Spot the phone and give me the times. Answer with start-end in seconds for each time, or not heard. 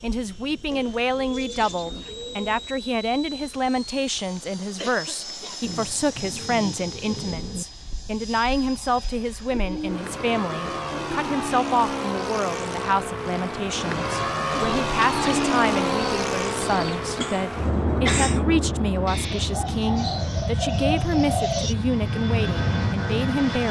not heard.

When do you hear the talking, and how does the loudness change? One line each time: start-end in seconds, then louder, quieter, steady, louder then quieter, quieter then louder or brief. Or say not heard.
0.0-23.6 steady.